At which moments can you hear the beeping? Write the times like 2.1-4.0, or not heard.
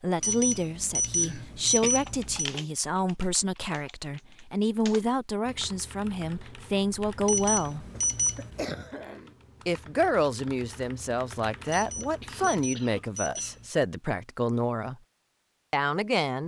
0.2-2.5, 7.2-8.7, 11.7-13.7.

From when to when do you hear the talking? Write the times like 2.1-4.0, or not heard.
0.0-7.8, 9.7-14.9, 15.7-16.4.